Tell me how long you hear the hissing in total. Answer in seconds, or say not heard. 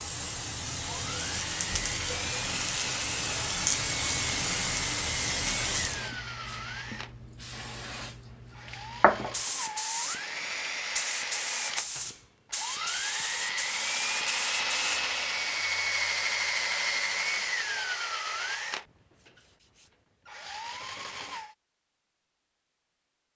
15 s.